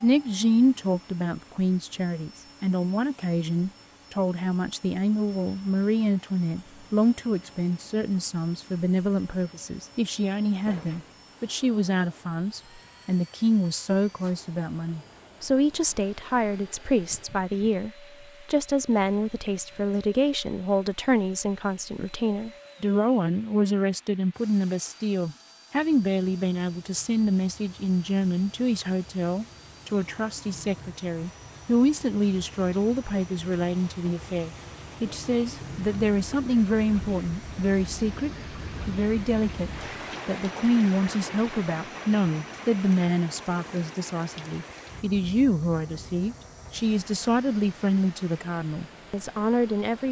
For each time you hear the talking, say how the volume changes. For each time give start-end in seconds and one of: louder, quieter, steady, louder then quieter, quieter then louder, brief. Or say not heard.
0.0-50.0 steady.